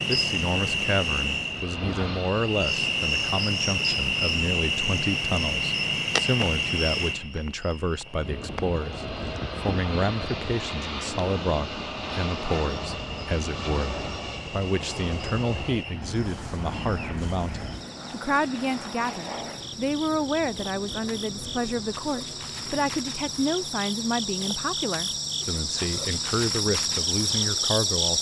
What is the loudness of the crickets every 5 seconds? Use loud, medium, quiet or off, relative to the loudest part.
loud, loud, quiet, quiet, medium, loud.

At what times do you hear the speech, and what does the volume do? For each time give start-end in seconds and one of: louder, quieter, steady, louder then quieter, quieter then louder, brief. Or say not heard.
0.1-28.1 steady.